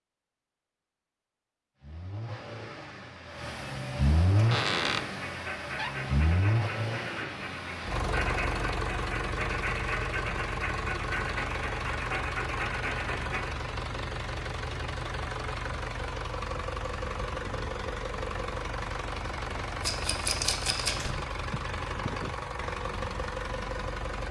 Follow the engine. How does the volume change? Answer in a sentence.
The loudness of the engine stays about the same.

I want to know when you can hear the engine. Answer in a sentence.
You can hear the engine from 1.8 to 24.2 s.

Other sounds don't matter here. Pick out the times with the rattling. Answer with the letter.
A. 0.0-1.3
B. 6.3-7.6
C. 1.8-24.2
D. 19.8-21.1
D.